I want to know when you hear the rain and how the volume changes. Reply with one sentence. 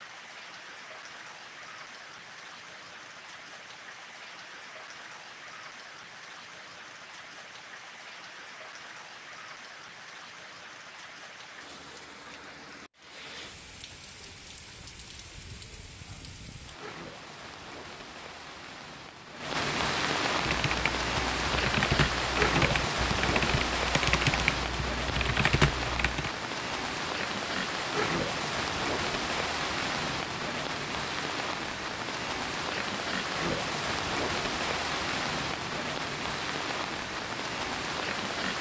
You can hear the rain from 0.0 to 38.5 s, getting louder.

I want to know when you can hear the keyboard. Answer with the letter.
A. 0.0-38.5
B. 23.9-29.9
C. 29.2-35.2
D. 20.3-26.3
D.